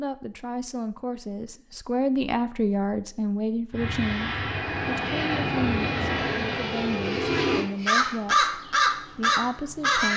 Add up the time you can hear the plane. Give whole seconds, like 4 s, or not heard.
4 s.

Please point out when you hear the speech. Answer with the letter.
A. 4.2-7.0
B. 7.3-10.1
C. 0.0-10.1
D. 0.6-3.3
C.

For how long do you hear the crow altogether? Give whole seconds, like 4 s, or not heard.
3 s.